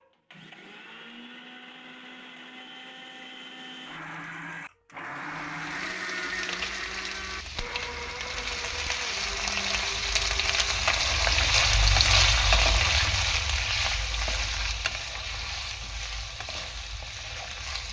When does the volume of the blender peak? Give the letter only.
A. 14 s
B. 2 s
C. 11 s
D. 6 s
D.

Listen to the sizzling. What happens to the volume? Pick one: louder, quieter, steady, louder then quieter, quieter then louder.
louder then quieter.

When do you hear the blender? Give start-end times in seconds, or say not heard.
0.0-11.0.